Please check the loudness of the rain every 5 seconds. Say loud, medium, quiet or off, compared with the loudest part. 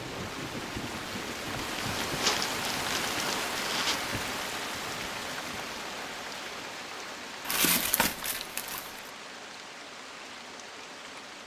loud, medium, medium.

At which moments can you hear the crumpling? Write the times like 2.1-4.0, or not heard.
2.0-4.0, 7.5-9.0.